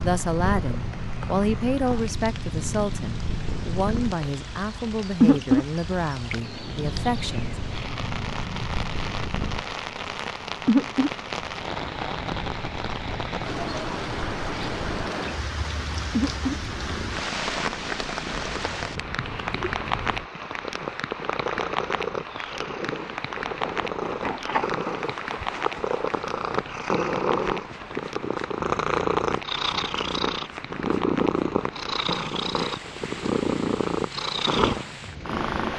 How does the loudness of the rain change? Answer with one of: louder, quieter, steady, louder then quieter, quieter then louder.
louder then quieter.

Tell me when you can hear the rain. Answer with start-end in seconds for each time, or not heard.
0.0-35.5.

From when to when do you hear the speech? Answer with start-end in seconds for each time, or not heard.
0.0-7.5.